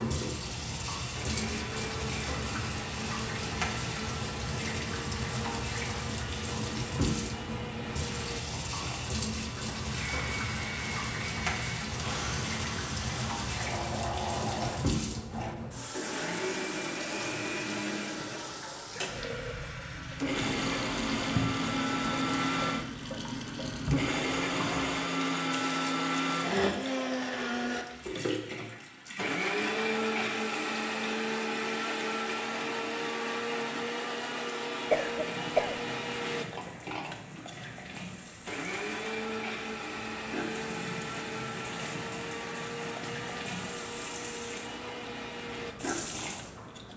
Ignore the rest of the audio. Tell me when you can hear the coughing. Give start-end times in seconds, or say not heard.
34.9-35.9.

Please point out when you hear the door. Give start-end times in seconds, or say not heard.
not heard.